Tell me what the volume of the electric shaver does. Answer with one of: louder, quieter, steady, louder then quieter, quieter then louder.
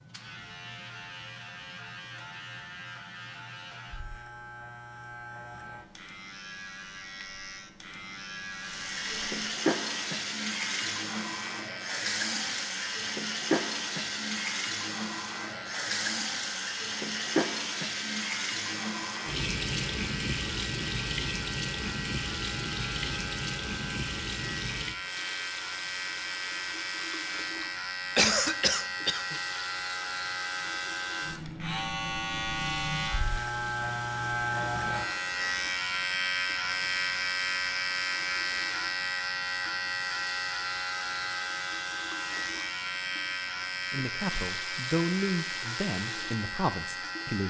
louder.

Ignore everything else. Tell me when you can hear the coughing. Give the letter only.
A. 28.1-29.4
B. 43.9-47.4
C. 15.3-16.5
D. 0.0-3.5
A.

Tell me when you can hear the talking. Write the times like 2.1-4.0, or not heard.
43.9-47.4.